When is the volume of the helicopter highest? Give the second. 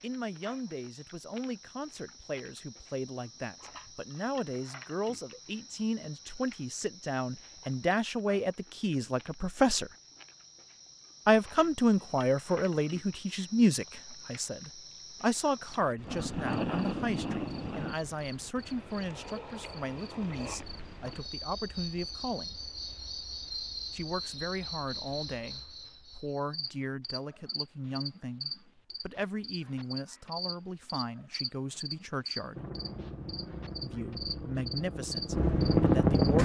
36 s.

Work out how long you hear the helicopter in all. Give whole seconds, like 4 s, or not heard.
4 s.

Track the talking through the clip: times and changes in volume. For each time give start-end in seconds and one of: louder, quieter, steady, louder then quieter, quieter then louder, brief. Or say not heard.
0.0-9.9 louder
11.2-22.6 quieter
23.9-32.6 steady
33.8-36.3 brief.